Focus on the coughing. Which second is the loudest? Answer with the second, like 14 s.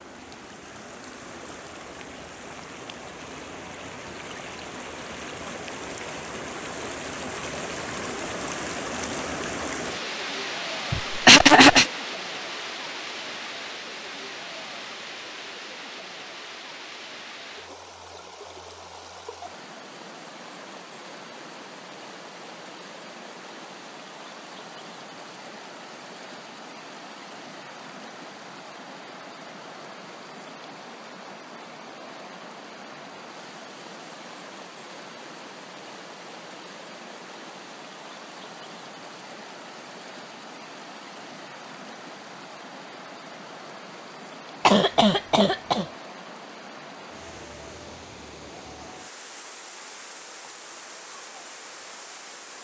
11 s.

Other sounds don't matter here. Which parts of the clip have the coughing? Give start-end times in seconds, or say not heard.
10.9-11.9, 44.6-45.9.